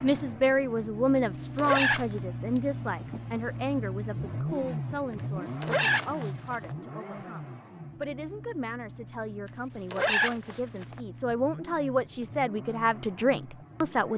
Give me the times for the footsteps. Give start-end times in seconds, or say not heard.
not heard.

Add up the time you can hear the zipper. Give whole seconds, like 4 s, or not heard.
3 s.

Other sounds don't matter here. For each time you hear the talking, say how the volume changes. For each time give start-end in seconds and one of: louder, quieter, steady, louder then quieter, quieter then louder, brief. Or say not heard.
0.0-14.1 quieter then louder.